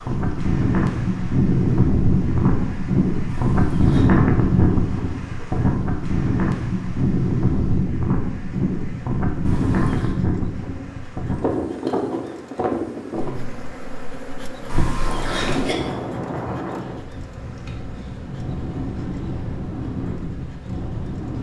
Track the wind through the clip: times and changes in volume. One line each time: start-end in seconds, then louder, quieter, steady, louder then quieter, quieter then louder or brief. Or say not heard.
0.0-21.3 quieter.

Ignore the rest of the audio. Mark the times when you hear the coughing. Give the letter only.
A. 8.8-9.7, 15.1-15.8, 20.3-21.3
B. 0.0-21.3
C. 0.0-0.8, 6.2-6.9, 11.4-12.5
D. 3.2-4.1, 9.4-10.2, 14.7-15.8
D.